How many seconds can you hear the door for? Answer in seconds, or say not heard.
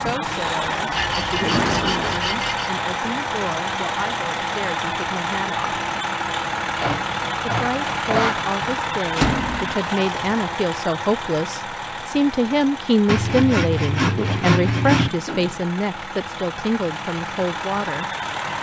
2 s.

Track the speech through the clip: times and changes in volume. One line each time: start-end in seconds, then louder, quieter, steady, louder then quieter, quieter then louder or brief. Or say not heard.
0.0-5.8 steady
7.4-18.1 louder then quieter.